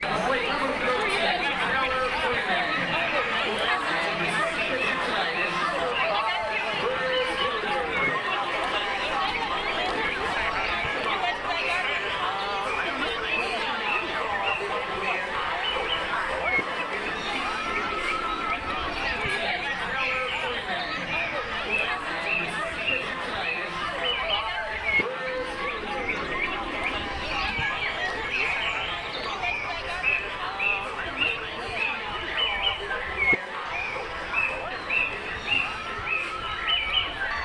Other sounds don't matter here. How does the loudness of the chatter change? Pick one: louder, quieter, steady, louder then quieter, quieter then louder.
quieter.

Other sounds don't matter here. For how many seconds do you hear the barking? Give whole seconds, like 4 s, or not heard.
not heard.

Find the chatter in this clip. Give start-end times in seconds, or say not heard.
0.0-37.3.